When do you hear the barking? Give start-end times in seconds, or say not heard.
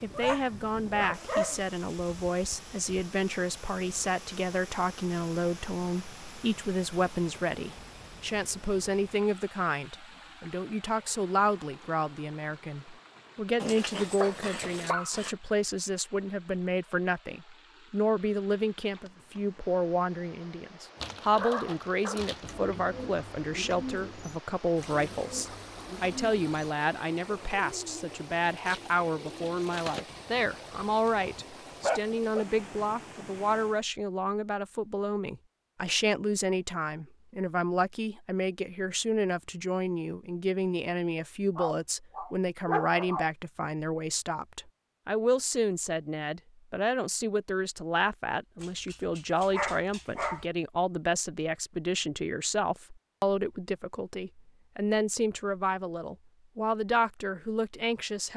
0.1-1.6, 13.6-15.3, 20.9-22.5, 30.1-32.5, 41.5-43.2, 48.6-50.5.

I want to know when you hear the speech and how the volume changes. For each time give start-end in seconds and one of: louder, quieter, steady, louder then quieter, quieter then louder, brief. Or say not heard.
0.0-58.3 steady.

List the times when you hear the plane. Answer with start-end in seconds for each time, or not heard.
not heard.